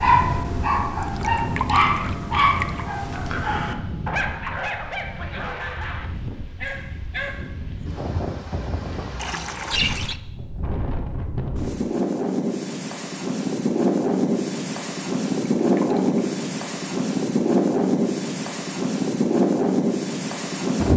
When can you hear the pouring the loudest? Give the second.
10 s.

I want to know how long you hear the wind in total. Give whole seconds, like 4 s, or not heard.
21 s.